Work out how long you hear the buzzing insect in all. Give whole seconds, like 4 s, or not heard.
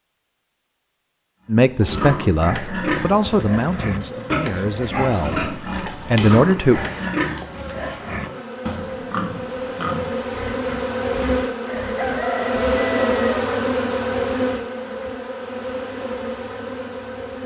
15 s.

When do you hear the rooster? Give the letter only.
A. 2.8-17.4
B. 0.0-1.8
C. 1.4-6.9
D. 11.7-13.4
D.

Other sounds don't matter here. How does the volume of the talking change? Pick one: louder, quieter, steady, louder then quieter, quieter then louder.
quieter then louder.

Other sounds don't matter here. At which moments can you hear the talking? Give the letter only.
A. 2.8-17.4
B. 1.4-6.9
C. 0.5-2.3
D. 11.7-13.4
B.